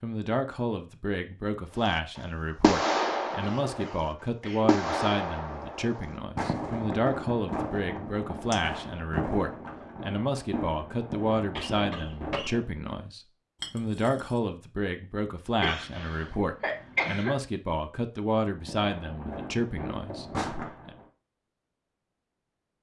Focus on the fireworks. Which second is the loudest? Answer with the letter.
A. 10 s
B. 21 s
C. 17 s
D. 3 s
D.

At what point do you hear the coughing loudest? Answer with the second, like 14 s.
17 s.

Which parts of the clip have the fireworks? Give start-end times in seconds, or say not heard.
1.8-12.7, 18.6-21.1.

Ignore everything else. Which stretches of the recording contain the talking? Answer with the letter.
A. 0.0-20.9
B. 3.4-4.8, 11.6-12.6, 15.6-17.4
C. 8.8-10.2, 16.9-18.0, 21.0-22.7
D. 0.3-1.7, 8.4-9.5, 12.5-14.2
A.